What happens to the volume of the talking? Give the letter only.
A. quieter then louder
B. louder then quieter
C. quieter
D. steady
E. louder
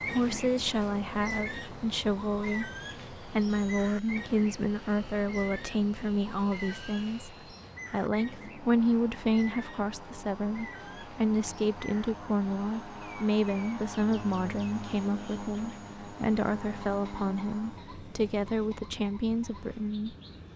D.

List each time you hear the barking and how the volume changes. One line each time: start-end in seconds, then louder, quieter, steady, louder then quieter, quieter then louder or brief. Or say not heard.
not heard.